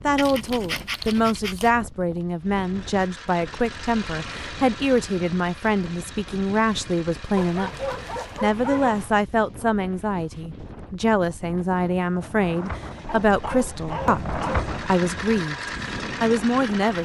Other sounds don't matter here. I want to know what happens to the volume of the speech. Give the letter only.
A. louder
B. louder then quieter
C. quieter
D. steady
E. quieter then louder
D.